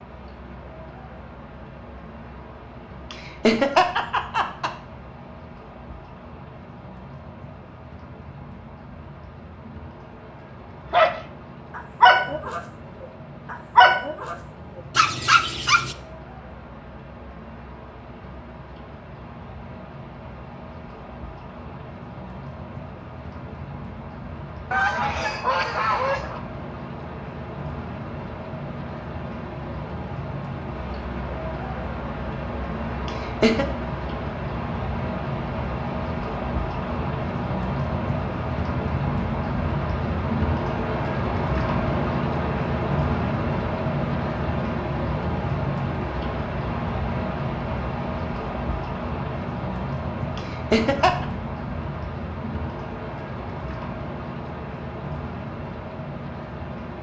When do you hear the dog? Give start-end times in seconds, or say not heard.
10.9-15.9.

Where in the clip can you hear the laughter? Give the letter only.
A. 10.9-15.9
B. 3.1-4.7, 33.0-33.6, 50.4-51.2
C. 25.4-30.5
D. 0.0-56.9
B.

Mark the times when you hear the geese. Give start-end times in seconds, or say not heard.
24.7-26.4.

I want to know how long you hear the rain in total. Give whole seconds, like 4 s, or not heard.
57 s.